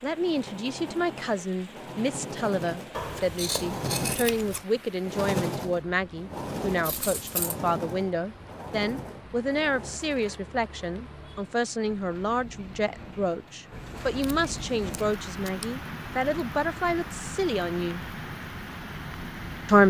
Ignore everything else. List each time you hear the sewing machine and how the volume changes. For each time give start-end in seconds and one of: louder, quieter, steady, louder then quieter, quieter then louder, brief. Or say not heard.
0.0-10.4 louder then quieter.